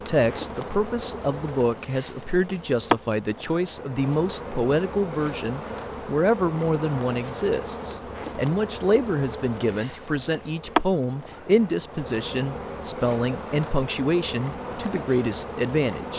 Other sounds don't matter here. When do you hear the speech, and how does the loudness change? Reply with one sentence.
You can hear the speech from 0.1 to 16.1 s, at a steady volume.